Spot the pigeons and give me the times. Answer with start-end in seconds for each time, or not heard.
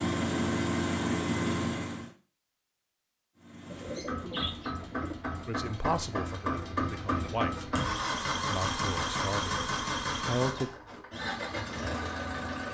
3.7-5.2.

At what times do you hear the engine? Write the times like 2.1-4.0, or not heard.
0.0-2.1, 3.4-12.6.